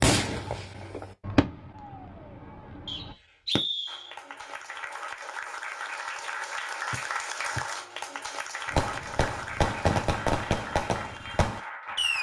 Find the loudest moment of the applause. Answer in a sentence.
The loudest moment of the applause is at 7 seconds.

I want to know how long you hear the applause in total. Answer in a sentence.
The applause can be heard for 8 seconds in total.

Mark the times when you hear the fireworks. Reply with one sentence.
The fireworks can be heard from 0.0 to 3.6 s and from 8.7 to 12.1 s.